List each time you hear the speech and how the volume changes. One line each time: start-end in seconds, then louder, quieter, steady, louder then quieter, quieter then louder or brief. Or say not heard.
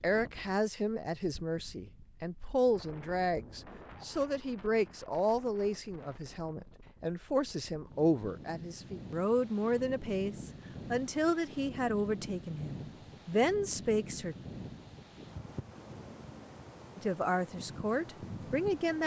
0.0-14.3 steady
16.9-19.0 brief.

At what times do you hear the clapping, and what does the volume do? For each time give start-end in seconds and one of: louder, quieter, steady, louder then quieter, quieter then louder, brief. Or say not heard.
not heard.